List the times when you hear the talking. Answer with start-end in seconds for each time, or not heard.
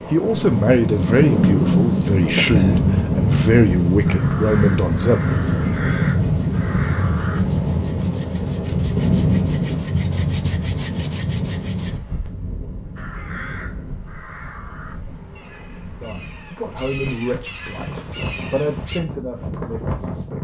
0.1-5.2, 15.9-20.4.